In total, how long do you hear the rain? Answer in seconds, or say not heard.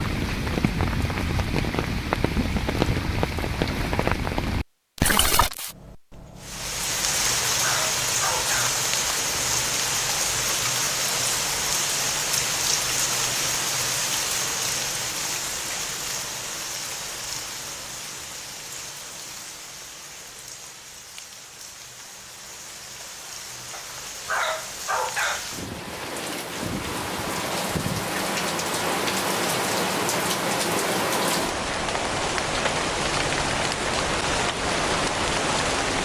36 s.